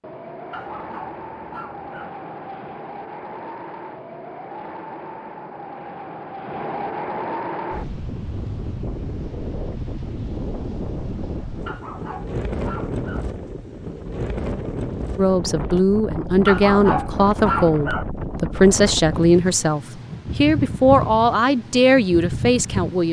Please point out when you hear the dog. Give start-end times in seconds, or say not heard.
0.5-2.1, 11.7-13.2, 16.4-18.1.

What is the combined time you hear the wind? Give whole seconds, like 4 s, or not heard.
23 s.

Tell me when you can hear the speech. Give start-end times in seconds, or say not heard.
15.2-23.0.